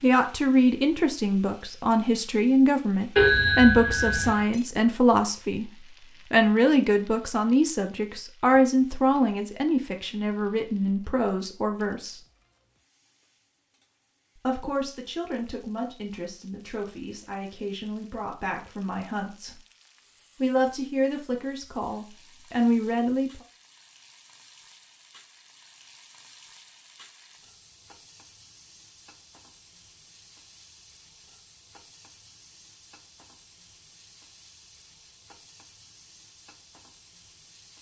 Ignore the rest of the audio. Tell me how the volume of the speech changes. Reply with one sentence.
The volume of the speech goes down, then up.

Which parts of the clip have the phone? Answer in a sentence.
You can hear the phone from 3.1 to 4.5 s.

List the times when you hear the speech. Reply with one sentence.
The speech can be heard from 0.0 to 5.7 s, from 6.3 to 12.2 s, from 14.3 to 19.6 s and from 20.4 to 23.4 s.